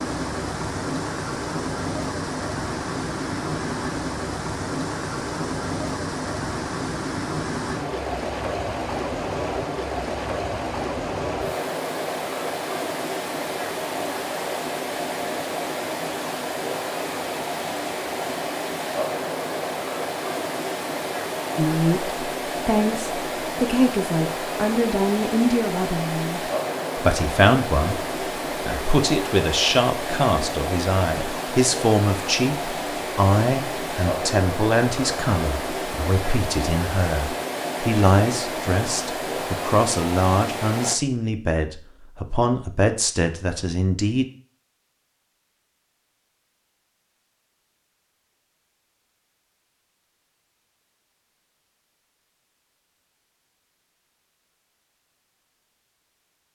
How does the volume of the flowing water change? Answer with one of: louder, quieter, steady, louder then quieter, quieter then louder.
steady.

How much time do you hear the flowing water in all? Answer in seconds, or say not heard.
41 s.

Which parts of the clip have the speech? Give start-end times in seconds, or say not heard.
21.6-44.2.